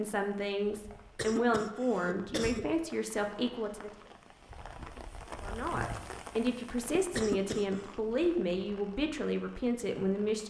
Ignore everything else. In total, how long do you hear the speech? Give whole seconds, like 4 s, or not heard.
9 s.